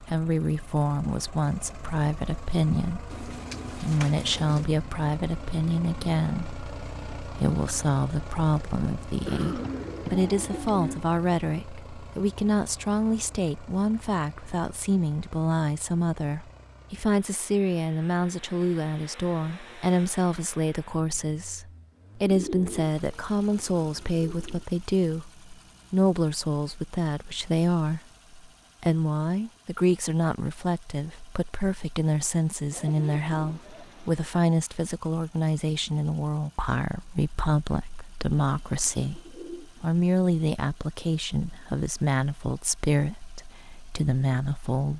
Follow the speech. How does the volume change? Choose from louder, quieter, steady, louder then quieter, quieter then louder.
steady.